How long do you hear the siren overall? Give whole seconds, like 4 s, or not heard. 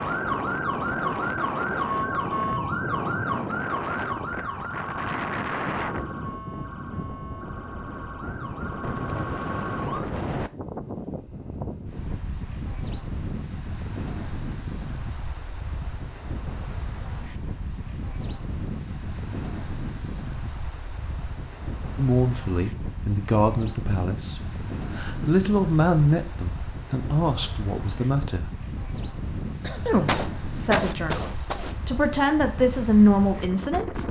10 s.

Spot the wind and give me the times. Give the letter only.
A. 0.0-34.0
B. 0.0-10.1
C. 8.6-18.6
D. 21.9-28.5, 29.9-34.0
A.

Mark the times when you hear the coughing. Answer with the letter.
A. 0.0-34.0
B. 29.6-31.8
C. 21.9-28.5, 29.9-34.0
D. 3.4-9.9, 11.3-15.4
B.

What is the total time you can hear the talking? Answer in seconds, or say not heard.
11 s.